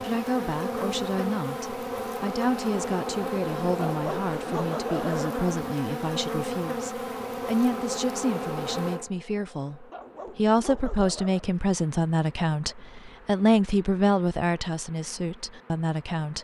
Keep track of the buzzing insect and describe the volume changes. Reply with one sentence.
The volume of the buzzing insect goes down.